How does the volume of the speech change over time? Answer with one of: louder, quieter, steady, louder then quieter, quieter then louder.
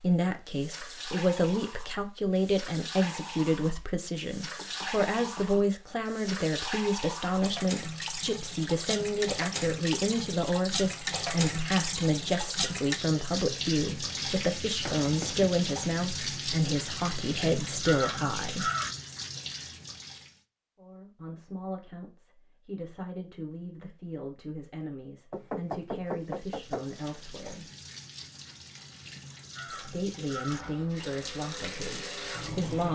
quieter.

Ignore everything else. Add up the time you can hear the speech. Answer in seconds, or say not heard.
29 s.